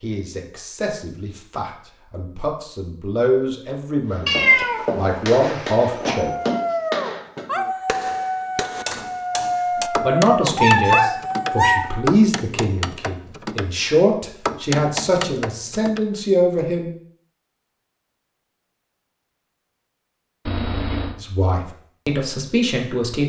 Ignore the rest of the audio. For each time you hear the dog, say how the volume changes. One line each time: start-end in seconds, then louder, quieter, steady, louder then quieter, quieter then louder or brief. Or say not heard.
6.2-12.0 steady.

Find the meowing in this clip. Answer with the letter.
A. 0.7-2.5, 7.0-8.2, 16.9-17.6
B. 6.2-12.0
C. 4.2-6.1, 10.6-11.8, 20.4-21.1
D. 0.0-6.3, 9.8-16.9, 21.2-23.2
C.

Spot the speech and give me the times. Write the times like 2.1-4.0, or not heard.
0.0-6.3, 9.8-16.9, 21.2-23.2.